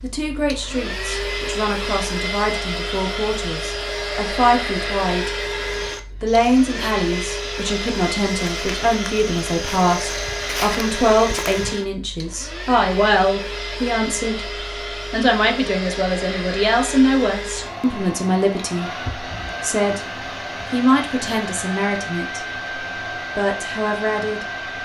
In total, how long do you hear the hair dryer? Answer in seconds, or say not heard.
25 s.